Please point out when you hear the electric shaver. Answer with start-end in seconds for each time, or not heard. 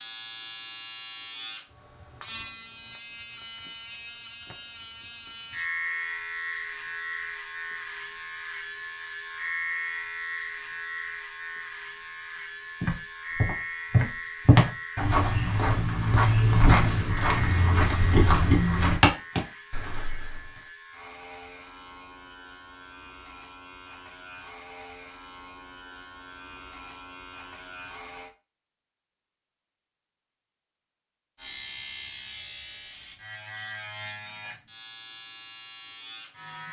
0.0-28.3, 31.4-36.6.